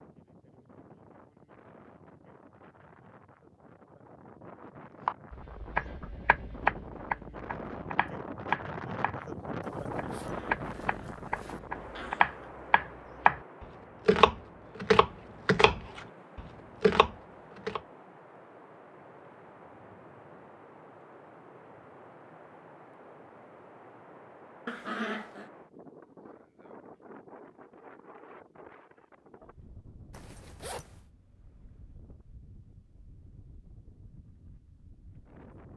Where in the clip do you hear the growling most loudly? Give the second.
25 s.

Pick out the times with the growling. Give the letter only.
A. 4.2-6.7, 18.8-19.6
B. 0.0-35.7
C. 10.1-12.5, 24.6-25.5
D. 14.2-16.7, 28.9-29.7
C.